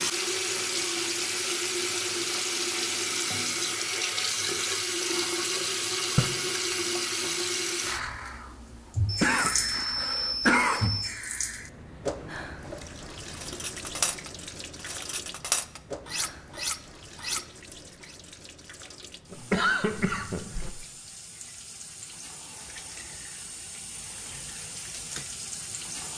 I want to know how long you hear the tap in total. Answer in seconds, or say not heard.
26 s.